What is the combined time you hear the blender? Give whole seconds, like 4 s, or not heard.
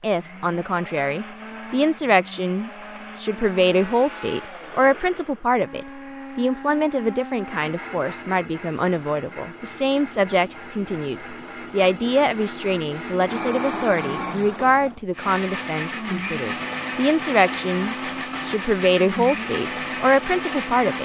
21 s.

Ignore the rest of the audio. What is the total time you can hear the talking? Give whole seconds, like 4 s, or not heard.
21 s.